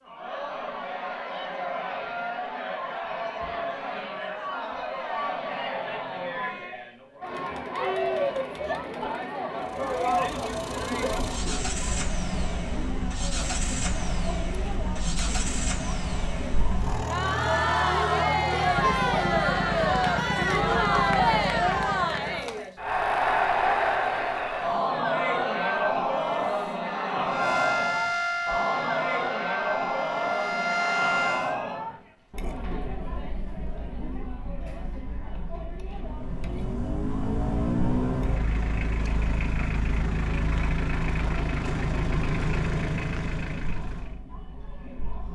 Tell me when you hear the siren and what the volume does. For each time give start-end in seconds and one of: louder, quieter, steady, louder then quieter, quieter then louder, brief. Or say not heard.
27.2-31.6 quieter then louder.